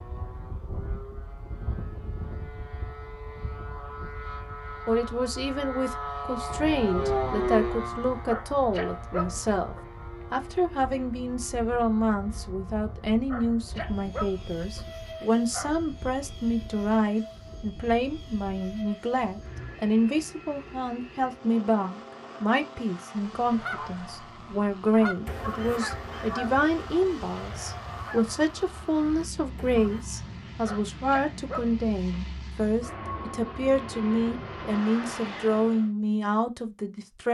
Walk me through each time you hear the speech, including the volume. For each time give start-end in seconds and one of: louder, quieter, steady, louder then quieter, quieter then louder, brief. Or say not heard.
4.8-37.2 steady.